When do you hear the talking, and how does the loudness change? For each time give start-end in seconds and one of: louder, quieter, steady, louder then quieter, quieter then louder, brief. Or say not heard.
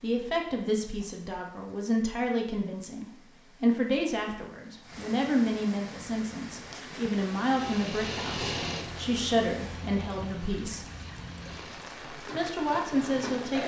0.0-10.8 steady
12.3-13.6 brief.